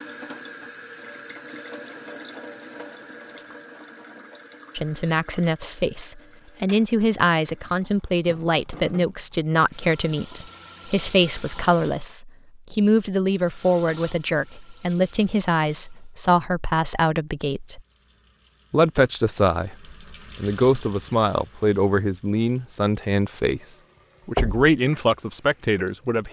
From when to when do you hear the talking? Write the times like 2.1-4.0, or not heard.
4.8-17.8, 18.7-19.8, 20.4-26.2.